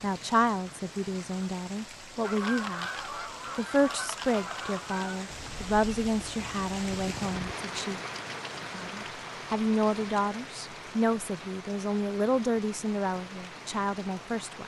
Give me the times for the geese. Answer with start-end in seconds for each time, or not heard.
2.2-7.6.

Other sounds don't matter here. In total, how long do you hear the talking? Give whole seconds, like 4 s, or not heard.
13 s.